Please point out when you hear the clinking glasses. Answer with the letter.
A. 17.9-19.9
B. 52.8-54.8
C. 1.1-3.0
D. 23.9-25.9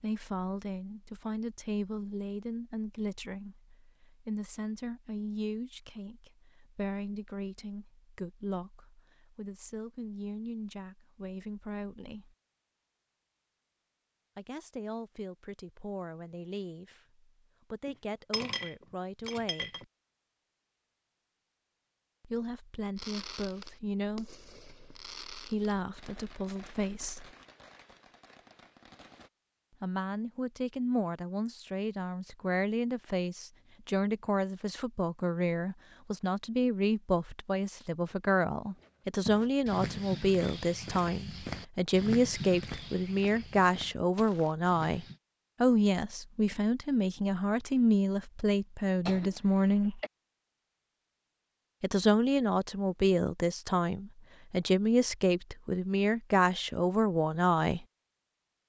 A.